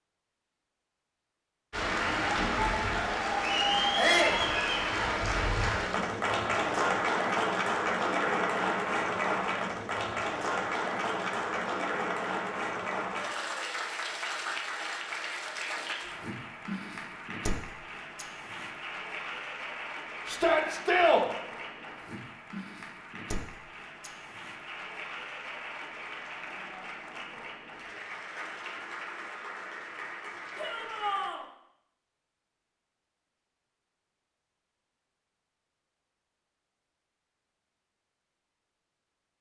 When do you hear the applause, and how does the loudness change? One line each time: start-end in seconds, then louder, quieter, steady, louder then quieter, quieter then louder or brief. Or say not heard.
1.7-31.3 quieter.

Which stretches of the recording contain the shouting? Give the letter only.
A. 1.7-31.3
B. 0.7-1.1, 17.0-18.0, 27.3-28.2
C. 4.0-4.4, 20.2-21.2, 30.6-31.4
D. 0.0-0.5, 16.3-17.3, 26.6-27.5
C.